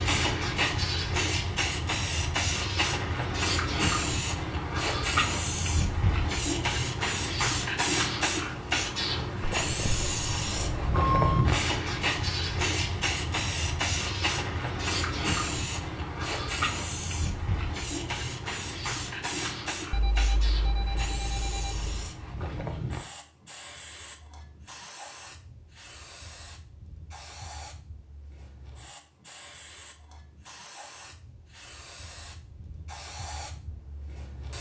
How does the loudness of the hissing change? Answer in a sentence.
The loudness of the hissing goes down.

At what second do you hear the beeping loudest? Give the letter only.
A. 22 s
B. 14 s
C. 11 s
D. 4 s
C.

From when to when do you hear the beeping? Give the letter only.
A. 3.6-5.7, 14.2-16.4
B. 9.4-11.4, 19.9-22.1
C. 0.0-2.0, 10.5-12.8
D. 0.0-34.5
B.